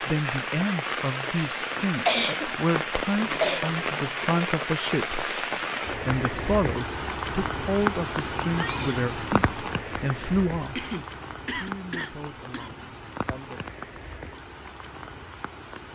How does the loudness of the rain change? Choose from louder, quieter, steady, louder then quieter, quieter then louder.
quieter.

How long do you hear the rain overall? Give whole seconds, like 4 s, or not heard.
16 s.